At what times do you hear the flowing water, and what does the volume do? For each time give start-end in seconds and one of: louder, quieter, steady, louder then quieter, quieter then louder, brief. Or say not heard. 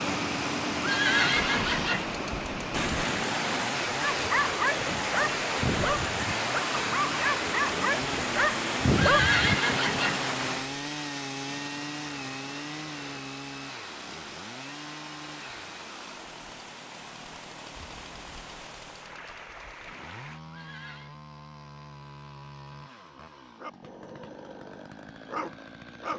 0.0-20.4 quieter.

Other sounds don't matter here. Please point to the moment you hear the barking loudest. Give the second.
9 s.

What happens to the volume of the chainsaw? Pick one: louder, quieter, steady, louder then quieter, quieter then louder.
quieter.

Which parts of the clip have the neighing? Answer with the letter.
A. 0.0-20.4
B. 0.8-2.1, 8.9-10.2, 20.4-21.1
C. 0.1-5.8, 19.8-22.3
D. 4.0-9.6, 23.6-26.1
B.